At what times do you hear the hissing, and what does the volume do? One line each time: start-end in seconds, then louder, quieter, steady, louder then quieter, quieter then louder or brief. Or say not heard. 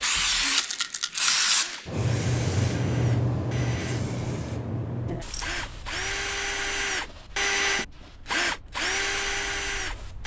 0.0-10.2 quieter.